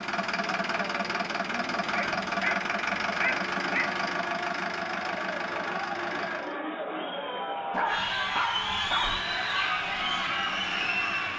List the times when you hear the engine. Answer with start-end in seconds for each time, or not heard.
0.0-6.6, 8.9-11.3.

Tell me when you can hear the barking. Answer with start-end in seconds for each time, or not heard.
1.9-3.9, 7.7-9.2.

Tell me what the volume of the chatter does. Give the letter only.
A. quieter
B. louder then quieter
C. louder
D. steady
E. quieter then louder
C.